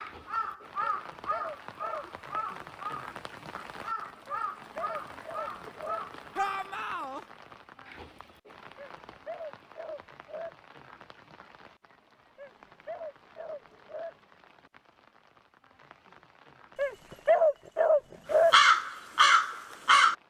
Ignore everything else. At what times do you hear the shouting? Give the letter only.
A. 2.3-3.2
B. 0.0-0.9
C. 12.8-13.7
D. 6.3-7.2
D.